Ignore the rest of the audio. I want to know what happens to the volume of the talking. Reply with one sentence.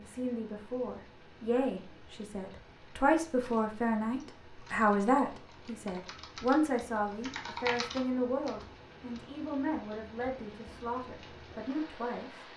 The loudness of the talking goes up, then down.